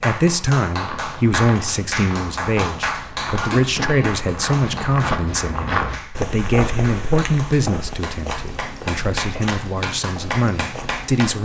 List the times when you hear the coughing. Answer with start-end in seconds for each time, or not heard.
3.4-4.1.